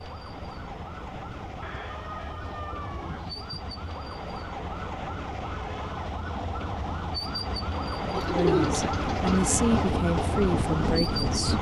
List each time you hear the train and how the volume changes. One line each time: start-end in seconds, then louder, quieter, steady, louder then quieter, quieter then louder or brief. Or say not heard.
0.0-11.5 louder.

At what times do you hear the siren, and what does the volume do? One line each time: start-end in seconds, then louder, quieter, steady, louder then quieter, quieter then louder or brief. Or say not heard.
0.0-11.5 louder.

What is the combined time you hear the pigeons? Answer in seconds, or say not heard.
3 s.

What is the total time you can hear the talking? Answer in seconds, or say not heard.
3 s.